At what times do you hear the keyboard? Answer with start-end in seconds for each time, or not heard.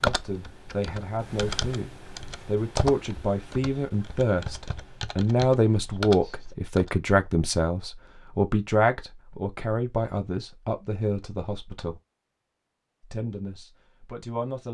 0.0-6.9.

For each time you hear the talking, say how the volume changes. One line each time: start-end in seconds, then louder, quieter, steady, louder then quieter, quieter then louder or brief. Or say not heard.
0.0-11.9 louder then quieter
13.1-14.6 brief.